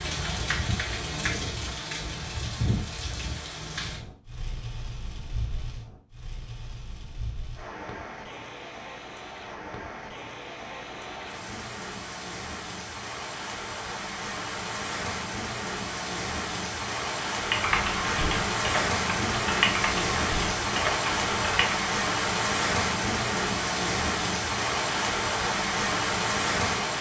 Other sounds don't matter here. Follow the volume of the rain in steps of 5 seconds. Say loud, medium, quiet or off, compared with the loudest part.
medium, quiet, medium, loud, loud, loud.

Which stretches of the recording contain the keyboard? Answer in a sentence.
You can hear the keyboard from 17.4 to 21.9 s.